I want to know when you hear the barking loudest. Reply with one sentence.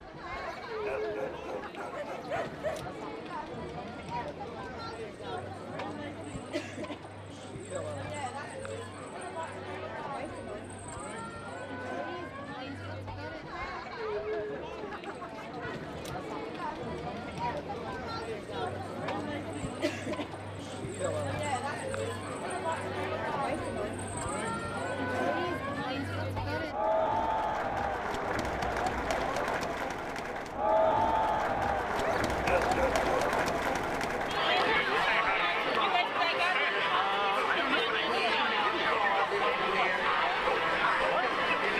The loudest moment of the barking is at 33 seconds.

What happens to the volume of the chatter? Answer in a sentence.
The loudness of the chatter goes up.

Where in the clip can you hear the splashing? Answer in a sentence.
The splashing can't be heard in this clip.